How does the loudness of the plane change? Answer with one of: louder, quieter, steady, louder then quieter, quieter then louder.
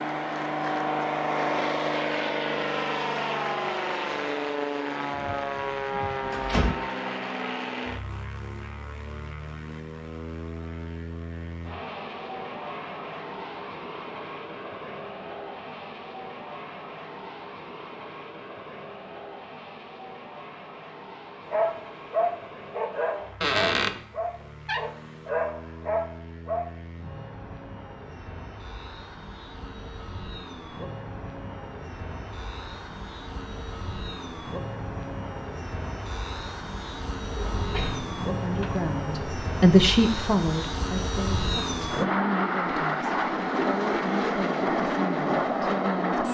quieter then louder.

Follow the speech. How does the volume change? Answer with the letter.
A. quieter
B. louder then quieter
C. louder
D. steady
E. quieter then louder
A.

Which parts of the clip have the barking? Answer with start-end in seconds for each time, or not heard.
21.4-26.7.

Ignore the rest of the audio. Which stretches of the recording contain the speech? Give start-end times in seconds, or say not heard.
38.0-46.2.